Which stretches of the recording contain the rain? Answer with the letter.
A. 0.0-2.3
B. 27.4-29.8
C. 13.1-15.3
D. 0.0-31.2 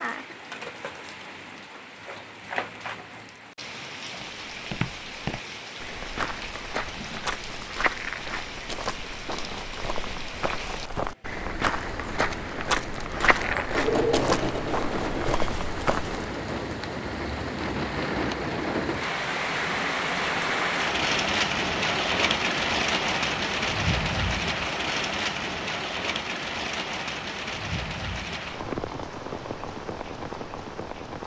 D.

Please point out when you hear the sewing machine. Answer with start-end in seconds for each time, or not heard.
13.1-15.3.